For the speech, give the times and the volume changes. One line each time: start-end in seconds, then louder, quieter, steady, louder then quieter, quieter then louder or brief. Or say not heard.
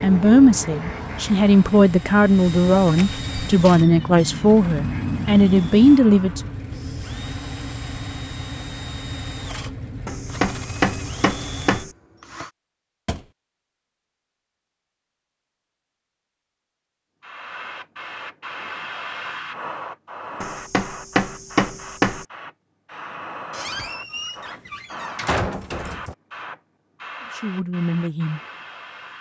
0.0-6.4 steady
27.3-28.4 brief.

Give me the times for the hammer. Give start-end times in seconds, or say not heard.
10.1-11.9, 20.4-22.2.